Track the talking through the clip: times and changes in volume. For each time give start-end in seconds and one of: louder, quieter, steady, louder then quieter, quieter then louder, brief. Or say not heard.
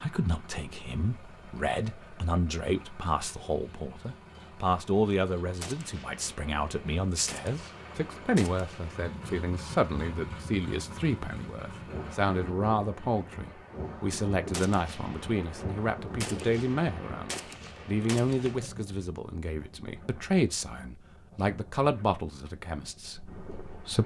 0.0-24.0 steady.